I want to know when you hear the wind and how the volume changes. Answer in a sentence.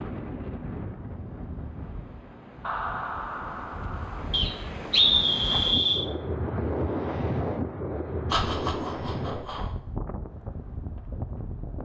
You can hear the wind from 0.0 to 11.8 s, getting louder then quieter.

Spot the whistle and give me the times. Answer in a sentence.
The whistle can be heard from 4.3 to 6.0 s.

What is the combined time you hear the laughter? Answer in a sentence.
The laughter can be heard for 3 seconds in total.